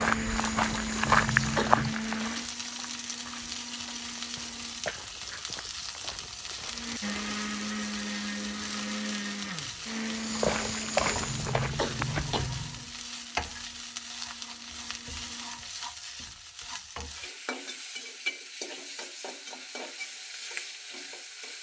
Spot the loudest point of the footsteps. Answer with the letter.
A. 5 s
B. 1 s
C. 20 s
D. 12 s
B.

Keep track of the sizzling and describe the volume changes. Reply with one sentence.
The loudness of the sizzling stays about the same.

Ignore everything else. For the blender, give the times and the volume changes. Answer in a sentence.
The blender can be heard from 0.0 to 5.0 s, getting quieter; and from 6.7 to 15.7 s, getting quieter.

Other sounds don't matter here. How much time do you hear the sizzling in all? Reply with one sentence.
The sizzling can be heard for 21 seconds in total.